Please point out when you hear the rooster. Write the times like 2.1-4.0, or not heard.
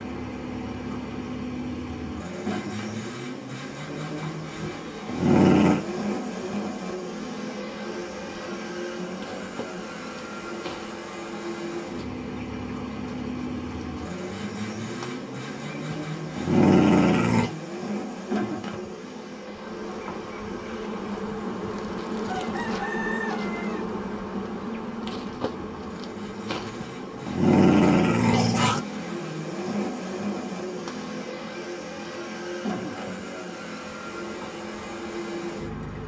22.2-23.9.